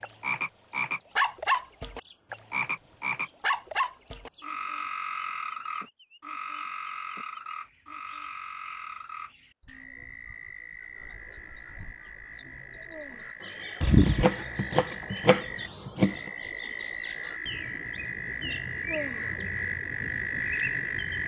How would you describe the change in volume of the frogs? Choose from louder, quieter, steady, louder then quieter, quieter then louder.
quieter then louder.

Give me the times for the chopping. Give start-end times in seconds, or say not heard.
13.8-16.3.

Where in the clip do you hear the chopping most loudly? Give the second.
14 s.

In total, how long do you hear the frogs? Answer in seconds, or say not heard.
21 s.